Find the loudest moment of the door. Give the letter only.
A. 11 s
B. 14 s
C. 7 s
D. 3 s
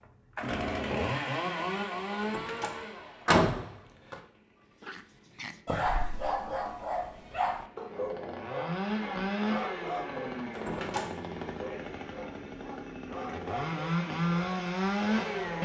D.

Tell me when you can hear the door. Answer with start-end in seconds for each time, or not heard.
2.2-4.2, 10.5-11.2.